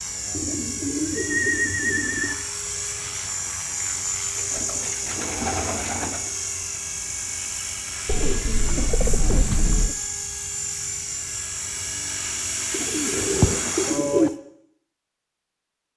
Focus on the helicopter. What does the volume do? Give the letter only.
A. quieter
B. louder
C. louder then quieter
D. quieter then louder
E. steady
E.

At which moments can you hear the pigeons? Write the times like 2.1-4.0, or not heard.
0.3-2.4, 4.3-6.3, 8.1-9.9, 12.7-14.3.